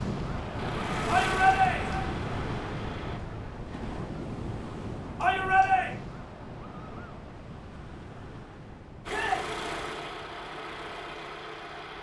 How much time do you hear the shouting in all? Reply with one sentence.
The shouting can be heard for 2 seconds in total.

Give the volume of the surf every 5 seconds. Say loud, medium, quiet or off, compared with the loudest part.
loud, medium, off.